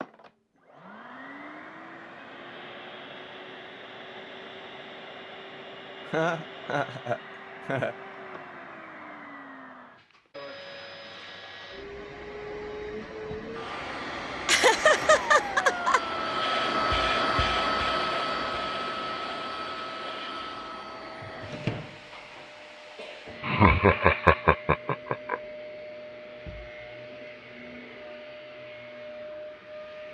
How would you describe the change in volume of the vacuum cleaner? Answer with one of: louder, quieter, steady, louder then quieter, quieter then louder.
louder then quieter.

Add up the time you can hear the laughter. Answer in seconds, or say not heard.
5 s.